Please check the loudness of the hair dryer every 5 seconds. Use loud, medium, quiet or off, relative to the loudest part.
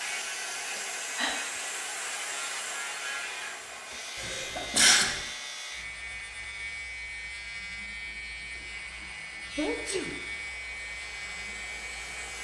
loud, quiet, medium.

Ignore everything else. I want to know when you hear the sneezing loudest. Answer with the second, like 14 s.
5 s.